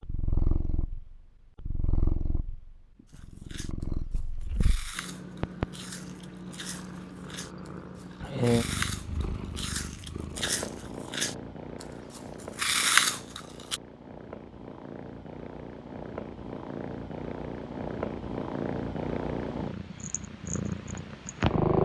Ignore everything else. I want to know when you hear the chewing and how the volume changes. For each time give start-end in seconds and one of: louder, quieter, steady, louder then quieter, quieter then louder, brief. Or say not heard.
3.1-13.8 louder.